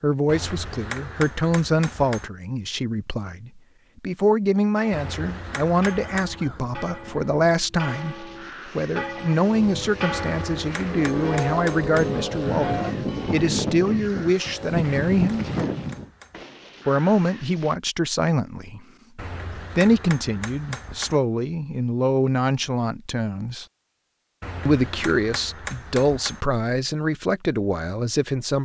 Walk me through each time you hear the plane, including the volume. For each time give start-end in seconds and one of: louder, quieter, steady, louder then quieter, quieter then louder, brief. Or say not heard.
9.4-16.1 louder.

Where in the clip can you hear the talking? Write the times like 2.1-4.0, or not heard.
0.0-15.4, 16.9-18.8, 19.6-23.6, 24.6-28.6.